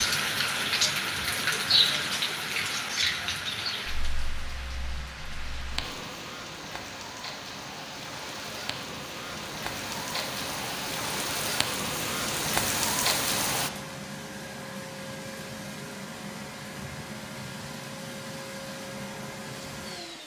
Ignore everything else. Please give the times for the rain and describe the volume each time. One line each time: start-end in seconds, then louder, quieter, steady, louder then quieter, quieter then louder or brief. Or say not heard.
0.0-13.7 quieter then louder.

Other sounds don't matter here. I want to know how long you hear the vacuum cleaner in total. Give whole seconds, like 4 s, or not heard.
20 s.